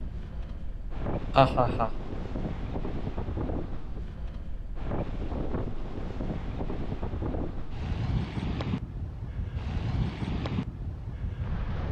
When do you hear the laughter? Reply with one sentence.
The laughter can be heard from 1.4 to 1.9 s.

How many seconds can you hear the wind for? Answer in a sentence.
You can hear the wind for 12 seconds altogether.